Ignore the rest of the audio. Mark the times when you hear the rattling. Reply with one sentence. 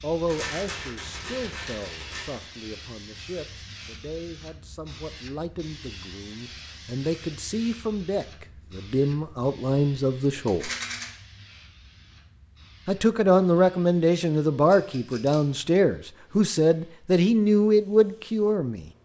The rattling can be heard from 0.2 to 2.5 s, from 10.4 to 11.1 s and from 14.7 to 15.4 s.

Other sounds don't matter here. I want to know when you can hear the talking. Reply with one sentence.
You can hear the talking from 0.0 to 10.7 s and from 12.8 to 18.9 s.